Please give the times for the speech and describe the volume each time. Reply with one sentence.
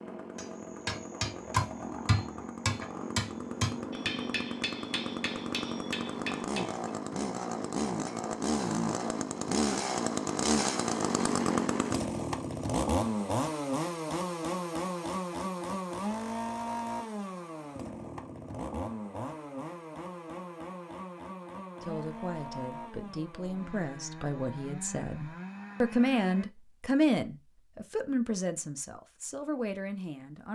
You can hear the speech from 21.8 to 30.5 s, getting louder then quieter.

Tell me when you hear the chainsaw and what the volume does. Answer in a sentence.
The chainsaw can be heard from 0.0 to 26.4 s, getting louder then quieter.